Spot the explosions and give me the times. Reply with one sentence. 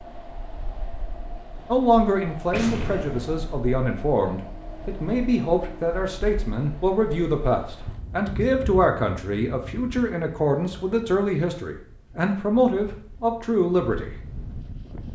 The explosions can be heard from 2.5 to 3.6 s.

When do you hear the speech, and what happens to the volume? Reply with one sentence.
The speech can be heard from 1.7 to 14.1 s, at a steady volume.